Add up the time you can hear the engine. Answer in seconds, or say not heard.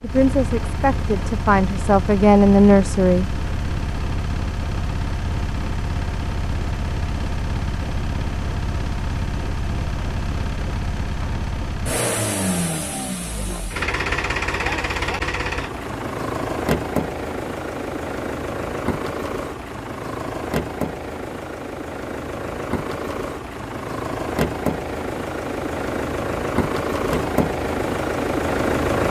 29 s.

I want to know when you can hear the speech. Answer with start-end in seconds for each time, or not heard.
0.0-3.2.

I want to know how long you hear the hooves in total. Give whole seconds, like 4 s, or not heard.
not heard.